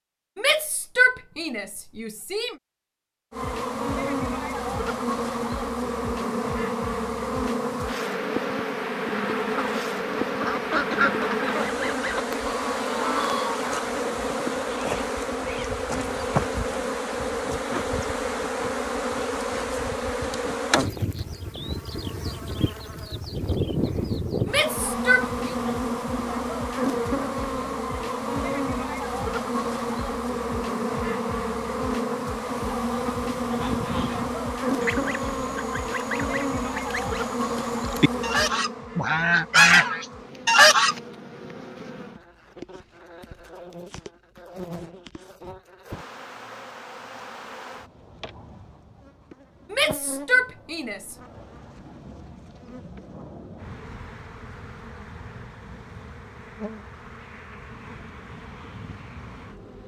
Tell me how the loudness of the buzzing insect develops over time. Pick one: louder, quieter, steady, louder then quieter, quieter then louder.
quieter.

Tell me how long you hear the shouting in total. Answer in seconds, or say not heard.
5 s.